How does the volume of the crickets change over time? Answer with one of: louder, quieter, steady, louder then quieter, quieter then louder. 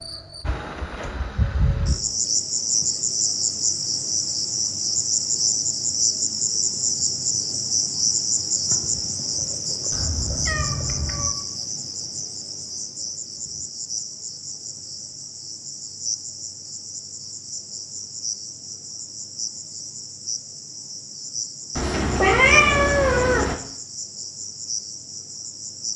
quieter.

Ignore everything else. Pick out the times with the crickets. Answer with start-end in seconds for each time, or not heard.
0.0-25.9.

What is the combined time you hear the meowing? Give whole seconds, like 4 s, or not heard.
3 s.